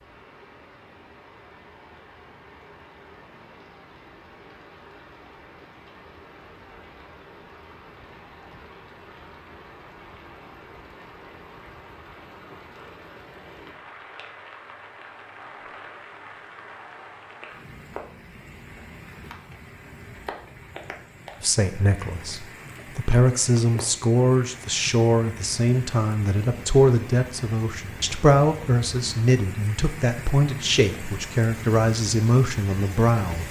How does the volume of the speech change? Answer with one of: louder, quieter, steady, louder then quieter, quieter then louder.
steady.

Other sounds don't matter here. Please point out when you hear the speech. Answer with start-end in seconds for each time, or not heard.
21.4-33.4.